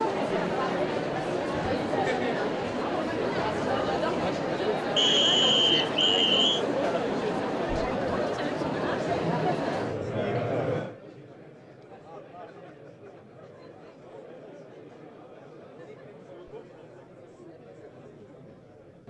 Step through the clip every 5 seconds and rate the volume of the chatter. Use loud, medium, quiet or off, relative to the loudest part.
loud, loud, medium, quiet.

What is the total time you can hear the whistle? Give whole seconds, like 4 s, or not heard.
2 s.